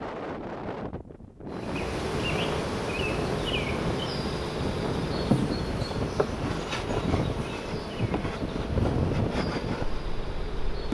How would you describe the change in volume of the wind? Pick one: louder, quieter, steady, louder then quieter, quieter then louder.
louder.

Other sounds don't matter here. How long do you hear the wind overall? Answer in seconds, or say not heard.
11 s.